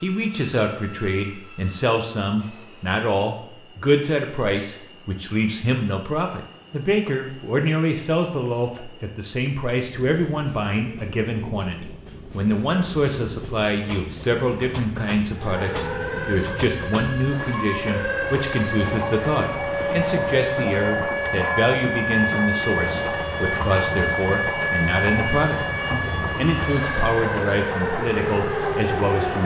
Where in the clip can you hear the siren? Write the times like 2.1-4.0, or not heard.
15.3-29.4.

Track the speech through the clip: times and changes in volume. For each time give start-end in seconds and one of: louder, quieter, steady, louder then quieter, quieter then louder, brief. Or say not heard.
0.0-29.4 steady.